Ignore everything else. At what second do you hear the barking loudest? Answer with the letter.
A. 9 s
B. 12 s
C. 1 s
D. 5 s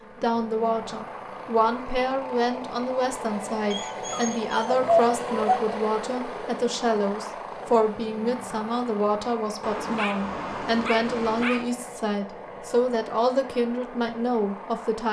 D.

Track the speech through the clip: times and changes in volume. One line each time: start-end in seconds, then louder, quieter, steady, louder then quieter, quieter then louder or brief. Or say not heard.
0.2-15.0 steady.